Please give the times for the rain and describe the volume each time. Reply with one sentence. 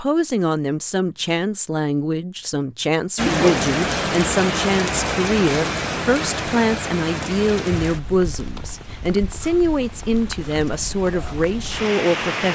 You can hear the rain from 3.1 to 12.4 s, getting quieter then louder.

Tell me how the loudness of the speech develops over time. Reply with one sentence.
The loudness of the speech stays about the same.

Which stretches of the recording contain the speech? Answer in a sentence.
You can hear the speech from 0.0 to 12.4 s.